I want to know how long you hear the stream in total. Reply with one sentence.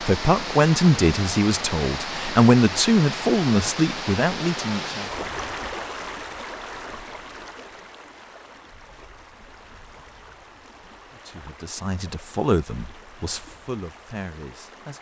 The stream can be heard for 15 seconds in total.